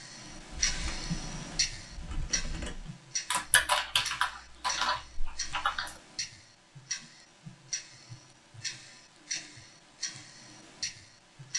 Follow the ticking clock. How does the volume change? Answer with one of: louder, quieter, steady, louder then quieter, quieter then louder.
quieter.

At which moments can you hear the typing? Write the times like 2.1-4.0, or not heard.
0.2-6.0.